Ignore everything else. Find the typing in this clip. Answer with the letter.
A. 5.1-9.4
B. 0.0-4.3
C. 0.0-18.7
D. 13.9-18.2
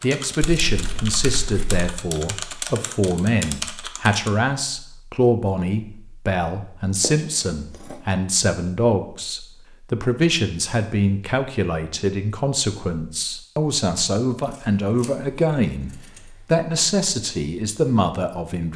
B.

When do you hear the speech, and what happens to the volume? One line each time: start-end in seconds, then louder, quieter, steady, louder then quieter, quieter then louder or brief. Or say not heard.
0.0-18.7 steady.